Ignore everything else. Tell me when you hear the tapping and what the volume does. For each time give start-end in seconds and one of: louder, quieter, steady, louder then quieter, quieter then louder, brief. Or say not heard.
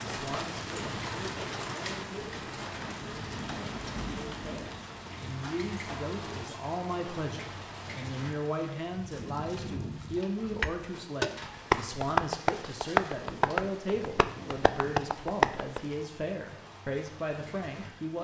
10.6-15.8 quieter then louder.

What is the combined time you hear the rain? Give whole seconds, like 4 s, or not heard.
18 s.